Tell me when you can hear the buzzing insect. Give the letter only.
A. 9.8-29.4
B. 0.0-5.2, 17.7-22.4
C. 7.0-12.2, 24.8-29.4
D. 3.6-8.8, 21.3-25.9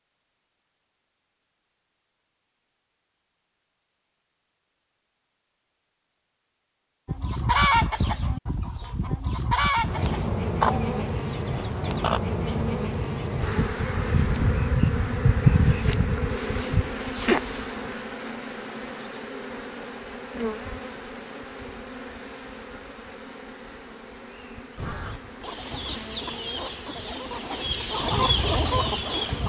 A.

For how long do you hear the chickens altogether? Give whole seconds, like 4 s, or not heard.
10 s.